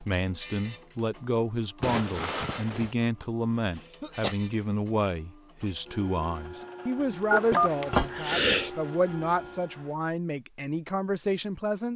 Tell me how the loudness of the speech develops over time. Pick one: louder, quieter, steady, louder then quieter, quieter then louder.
steady.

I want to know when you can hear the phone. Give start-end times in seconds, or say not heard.
1.8-2.9, 7.3-7.7.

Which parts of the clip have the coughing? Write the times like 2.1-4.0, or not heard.
3.2-4.3, 7.3-8.7.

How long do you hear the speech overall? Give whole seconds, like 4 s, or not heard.
12 s.